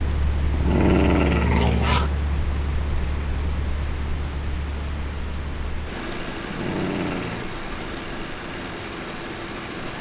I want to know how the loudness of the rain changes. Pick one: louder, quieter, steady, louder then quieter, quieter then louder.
steady.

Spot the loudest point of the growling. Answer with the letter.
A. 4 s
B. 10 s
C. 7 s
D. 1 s
D.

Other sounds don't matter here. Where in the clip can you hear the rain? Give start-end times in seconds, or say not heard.
0.0-9.9.